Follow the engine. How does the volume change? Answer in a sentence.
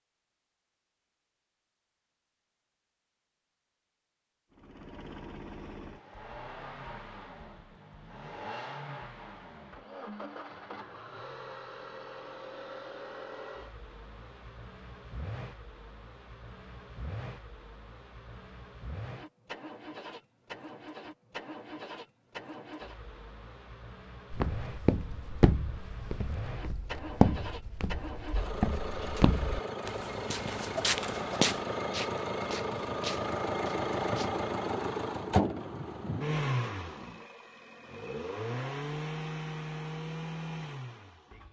The loudness of the engine goes up.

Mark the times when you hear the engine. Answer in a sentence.
The engine can be heard from 4.5 to 41.4 s.